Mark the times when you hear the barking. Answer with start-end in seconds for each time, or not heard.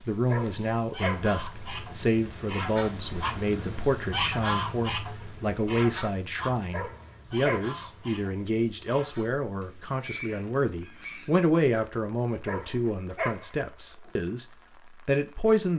0.2-1.9, 6.7-7.8, 12.4-14.1.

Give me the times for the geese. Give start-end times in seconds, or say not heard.
0.8-11.4.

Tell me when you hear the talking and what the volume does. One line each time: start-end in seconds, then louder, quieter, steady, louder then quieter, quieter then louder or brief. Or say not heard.
0.1-14.4 steady
15.1-15.7 brief.